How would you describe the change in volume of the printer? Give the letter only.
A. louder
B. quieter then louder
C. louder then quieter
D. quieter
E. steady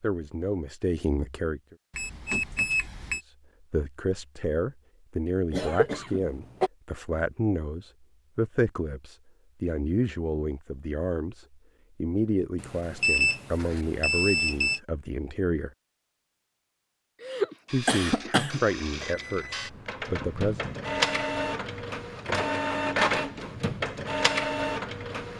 A.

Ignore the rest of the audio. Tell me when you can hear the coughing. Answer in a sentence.
You can hear the coughing from 5.5 to 6.7 s and from 17.2 to 18.6 s.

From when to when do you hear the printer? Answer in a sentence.
You can hear the printer from 17.6 to 25.3 s.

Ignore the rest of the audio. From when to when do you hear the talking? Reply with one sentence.
The talking can be heard from 0.0 to 1.8 s, from 3.2 to 15.7 s and from 17.7 to 20.6 s.